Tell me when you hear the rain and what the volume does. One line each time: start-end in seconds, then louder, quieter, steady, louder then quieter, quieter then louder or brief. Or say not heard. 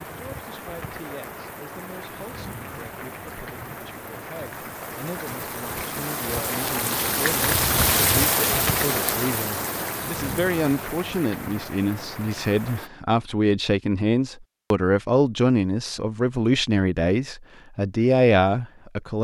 0.0-12.9 louder then quieter.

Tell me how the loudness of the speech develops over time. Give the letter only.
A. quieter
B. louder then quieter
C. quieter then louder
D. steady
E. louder
E.